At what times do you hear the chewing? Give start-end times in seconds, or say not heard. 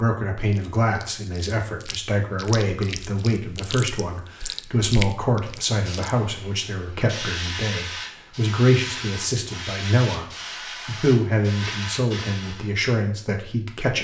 0.5-6.1.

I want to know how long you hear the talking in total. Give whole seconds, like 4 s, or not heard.
13 s.